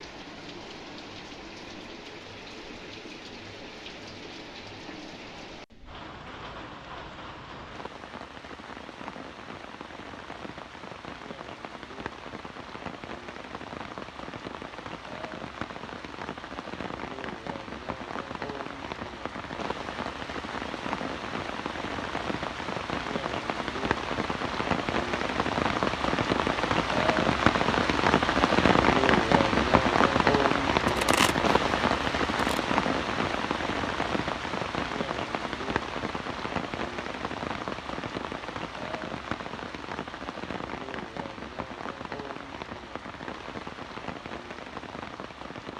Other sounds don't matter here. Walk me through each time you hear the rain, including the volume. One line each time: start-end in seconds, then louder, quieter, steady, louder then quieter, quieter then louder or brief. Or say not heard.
0.0-45.7 louder then quieter.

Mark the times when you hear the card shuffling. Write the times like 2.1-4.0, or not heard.
30.9-32.6.